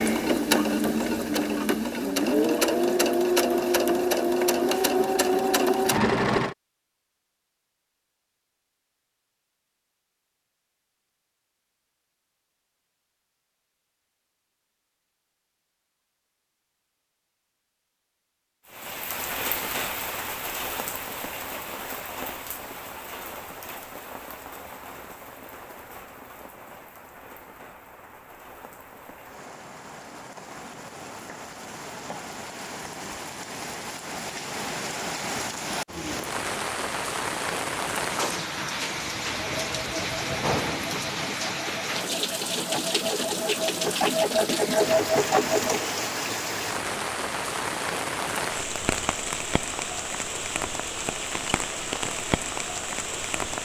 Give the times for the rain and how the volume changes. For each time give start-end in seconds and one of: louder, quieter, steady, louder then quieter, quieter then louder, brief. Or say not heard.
18.6-53.5 quieter then louder.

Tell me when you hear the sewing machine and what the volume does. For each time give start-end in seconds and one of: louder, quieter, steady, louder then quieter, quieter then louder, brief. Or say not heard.
0.0-6.5 steady
39.4-45.9 louder.